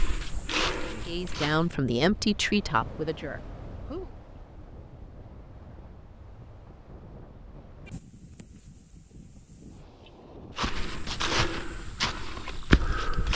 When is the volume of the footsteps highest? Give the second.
13 s.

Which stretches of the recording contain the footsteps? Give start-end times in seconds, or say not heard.
0.0-1.7, 10.6-13.3.